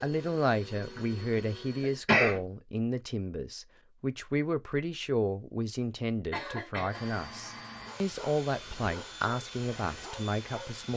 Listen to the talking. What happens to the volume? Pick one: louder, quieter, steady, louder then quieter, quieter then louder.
steady.